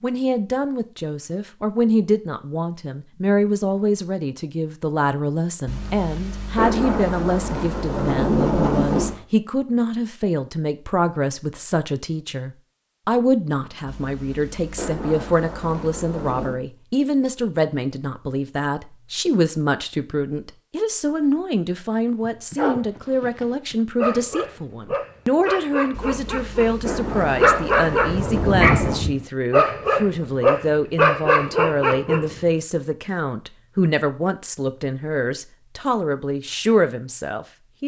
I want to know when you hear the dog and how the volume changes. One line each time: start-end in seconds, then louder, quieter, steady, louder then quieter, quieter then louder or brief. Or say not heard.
22.2-32.4 louder.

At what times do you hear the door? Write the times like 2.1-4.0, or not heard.
not heard.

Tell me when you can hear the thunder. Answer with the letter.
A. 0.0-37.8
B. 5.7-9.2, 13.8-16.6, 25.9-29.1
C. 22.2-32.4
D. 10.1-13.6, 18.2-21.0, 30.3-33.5
B.